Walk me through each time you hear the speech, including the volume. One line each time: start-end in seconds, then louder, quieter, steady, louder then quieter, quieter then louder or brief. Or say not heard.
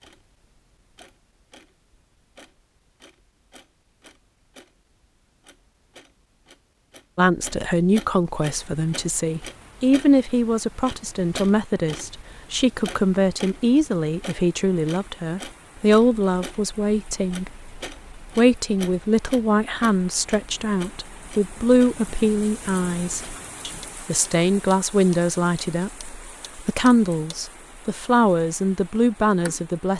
7.2-29.9 steady.